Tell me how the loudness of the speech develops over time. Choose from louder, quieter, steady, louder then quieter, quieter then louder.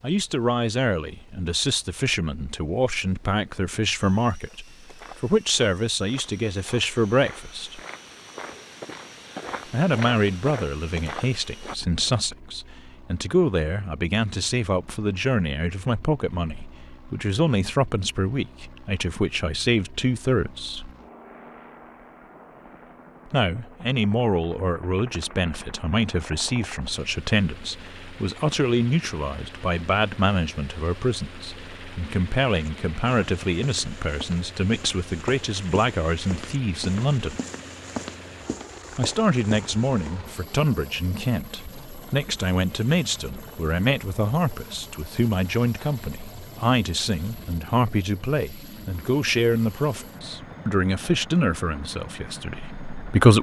steady.